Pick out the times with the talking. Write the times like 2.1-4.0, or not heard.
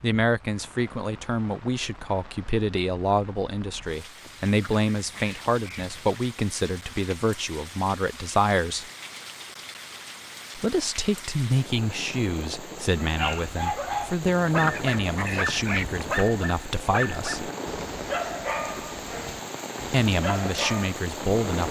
0.0-8.8, 10.6-17.5, 19.9-21.6.